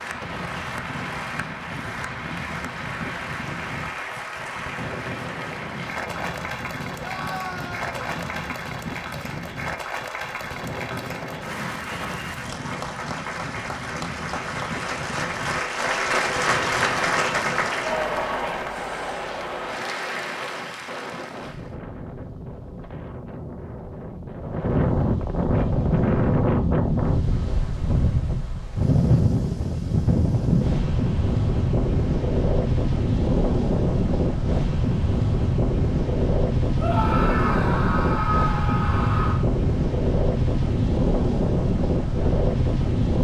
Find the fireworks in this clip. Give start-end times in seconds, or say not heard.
not heard.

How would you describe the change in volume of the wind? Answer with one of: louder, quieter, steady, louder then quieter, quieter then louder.
louder.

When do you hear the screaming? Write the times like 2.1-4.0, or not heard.
7.0-7.9, 36.8-39.4.